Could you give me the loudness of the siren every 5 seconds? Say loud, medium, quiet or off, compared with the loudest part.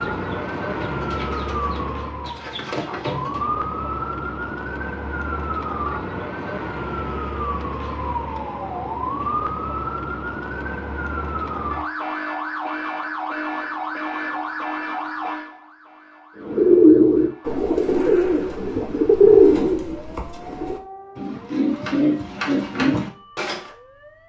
loud, loud, loud, medium, quiet.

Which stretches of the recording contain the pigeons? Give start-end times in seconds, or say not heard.
0.0-3.5, 16.4-23.6.